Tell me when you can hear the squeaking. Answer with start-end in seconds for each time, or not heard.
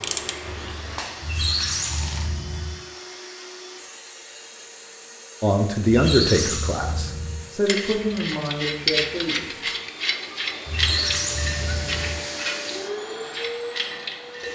1.2-2.8, 5.8-7.4, 10.7-12.2.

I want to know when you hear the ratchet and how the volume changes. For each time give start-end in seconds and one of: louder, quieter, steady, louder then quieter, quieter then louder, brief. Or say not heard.
0.0-2.3 brief
7.7-14.4 quieter.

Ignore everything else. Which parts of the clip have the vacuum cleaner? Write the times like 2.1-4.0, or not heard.
0.0-14.4.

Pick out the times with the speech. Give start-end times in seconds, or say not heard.
5.4-9.6.